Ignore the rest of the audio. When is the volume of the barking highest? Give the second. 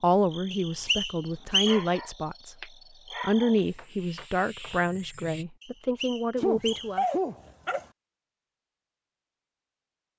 7 s.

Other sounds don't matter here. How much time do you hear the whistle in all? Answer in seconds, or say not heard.
3 s.